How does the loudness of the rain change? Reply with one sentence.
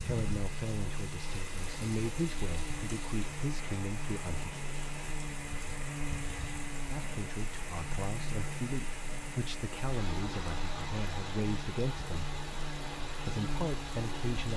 The volume of the rain stays about the same.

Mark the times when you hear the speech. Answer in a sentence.
You can hear the speech from 0.0 to 4.5 s, from 6.9 to 12.3 s and from 13.2 to 14.5 s.